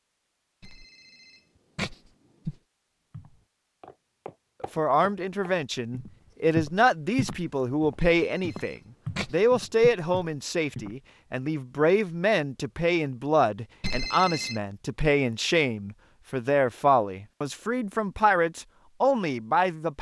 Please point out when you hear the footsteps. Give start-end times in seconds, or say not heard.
3.1-11.0.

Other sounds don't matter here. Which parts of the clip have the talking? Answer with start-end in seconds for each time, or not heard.
4.8-19.9.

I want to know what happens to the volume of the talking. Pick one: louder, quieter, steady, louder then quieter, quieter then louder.
steady.